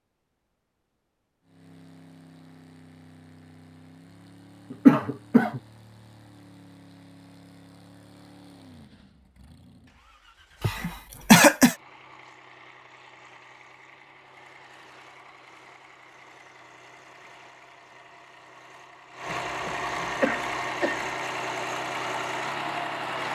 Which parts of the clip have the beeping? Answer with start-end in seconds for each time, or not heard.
not heard.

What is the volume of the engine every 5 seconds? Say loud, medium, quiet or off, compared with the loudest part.
quiet, quiet, quiet, medium, loud.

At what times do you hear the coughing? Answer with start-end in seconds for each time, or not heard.
4.7-5.6, 10.6-11.8, 19.3-21.1.